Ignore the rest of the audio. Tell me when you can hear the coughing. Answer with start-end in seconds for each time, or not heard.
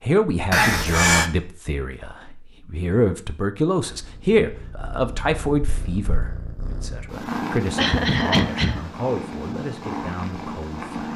0.5-1.3, 7.8-8.8.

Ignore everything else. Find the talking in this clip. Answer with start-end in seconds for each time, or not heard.
0.0-10.9.